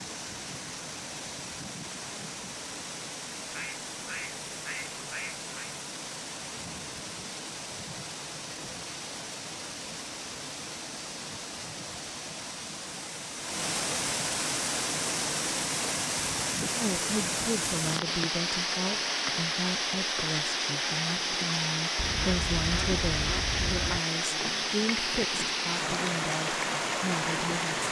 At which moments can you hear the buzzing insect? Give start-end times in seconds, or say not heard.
not heard.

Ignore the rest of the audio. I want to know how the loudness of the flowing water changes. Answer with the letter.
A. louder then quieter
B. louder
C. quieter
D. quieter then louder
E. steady
B.